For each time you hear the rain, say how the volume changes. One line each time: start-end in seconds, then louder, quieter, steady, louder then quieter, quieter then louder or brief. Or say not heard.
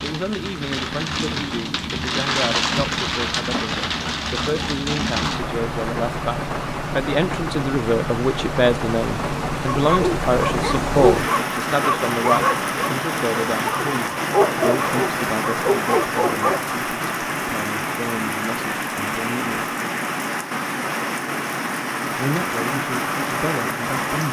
0.0-24.2 steady.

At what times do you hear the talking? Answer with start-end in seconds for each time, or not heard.
0.0-19.7, 22.1-24.2.